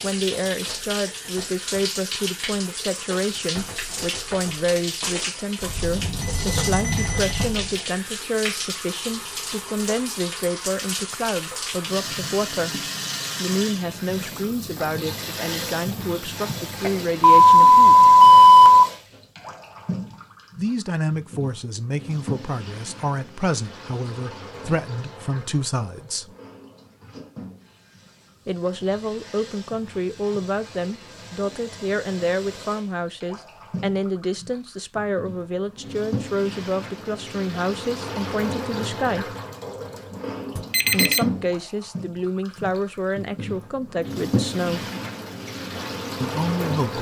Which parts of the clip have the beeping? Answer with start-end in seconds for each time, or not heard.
5.6-7.8, 16.8-18.9, 40.5-41.2.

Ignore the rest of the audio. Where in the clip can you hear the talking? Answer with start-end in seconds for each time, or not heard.
0.0-18.1, 20.6-26.4, 28.4-39.4, 40.9-44.9, 46.2-46.9.